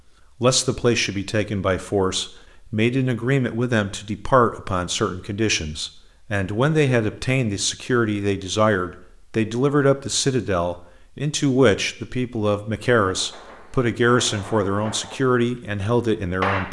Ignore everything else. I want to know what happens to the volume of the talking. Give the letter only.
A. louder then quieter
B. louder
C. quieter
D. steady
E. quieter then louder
D.